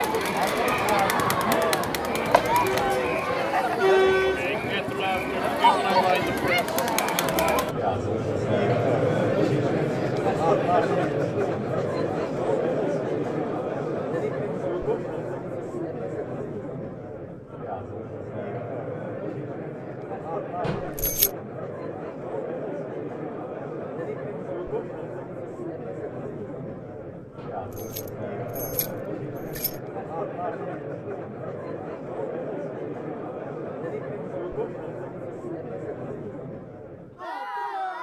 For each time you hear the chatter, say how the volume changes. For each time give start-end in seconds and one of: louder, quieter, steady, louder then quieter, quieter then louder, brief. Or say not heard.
0.0-37.9 quieter.